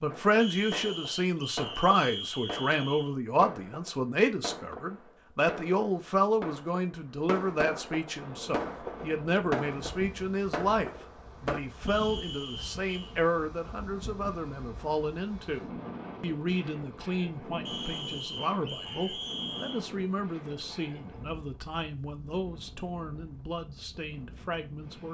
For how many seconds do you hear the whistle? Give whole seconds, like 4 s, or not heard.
6 s.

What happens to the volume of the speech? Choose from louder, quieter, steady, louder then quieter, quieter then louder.
quieter.